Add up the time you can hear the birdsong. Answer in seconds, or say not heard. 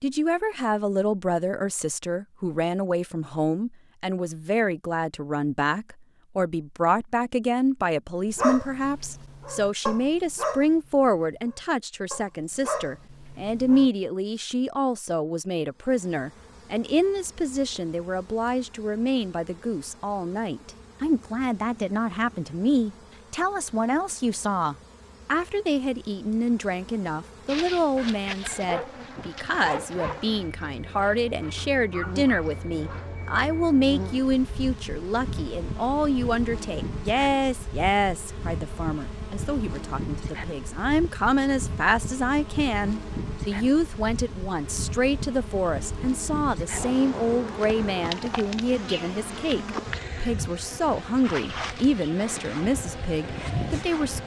not heard.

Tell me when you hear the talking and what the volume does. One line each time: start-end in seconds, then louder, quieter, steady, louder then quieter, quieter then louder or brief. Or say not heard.
0.0-54.2 steady.